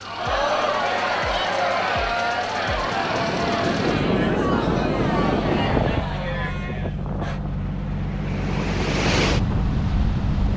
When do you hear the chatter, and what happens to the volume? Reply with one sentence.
The chatter can be heard from 0.0 to 7.4 s, getting quieter.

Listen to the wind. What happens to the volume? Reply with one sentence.
The volume of the wind goes down, then up.